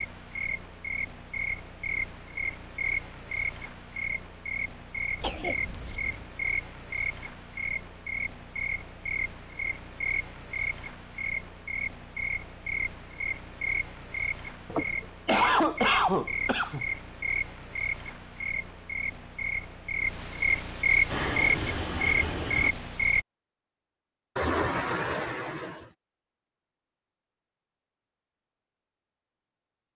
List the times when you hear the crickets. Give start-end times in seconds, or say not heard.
0.0-23.2.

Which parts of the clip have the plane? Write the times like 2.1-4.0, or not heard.
21.1-22.7.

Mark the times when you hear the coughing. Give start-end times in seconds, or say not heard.
5.2-6.2, 14.7-16.9, 24.4-25.9.